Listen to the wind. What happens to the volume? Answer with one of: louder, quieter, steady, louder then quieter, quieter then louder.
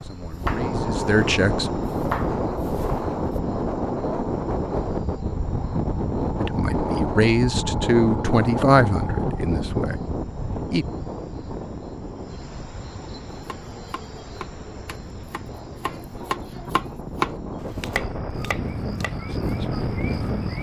quieter then louder.